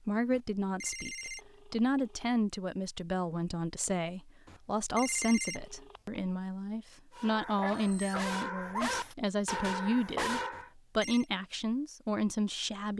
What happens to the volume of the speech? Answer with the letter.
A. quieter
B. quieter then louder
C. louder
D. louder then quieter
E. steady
E.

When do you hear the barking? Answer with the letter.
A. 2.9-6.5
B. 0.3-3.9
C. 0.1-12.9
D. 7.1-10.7
D.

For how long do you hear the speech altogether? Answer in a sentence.
The speech can be heard for 13 seconds in total.